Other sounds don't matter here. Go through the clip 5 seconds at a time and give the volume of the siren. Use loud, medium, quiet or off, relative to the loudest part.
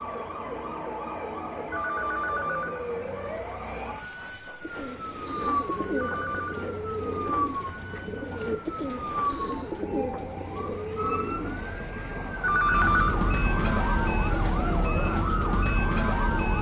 medium, medium, loud, loud.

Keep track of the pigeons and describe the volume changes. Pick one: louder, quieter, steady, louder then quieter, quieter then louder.
steady.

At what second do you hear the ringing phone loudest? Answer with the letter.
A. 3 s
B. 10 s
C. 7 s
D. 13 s
D.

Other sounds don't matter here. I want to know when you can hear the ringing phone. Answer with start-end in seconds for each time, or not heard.
1.7-2.9, 6.0-6.7, 12.4-13.2.